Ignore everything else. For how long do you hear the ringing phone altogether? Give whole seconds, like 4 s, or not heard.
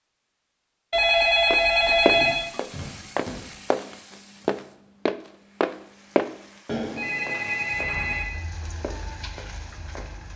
4 s.